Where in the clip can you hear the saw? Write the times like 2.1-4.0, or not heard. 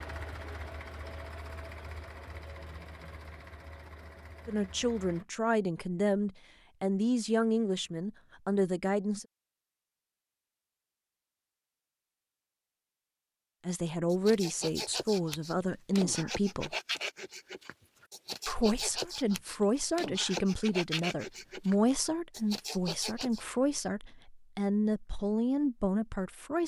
14.1-23.4.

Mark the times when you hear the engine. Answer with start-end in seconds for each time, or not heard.
0.0-5.2.